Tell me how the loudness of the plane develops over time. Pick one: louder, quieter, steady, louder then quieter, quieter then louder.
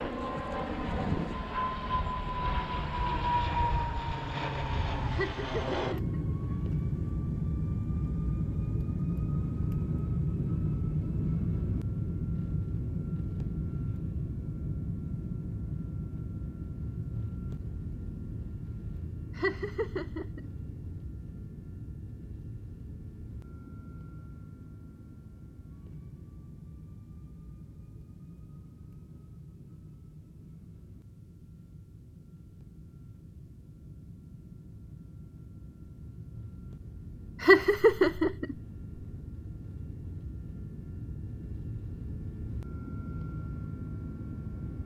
quieter then louder.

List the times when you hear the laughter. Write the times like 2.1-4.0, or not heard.
5.1-6.2, 19.4-20.5, 37.4-38.5.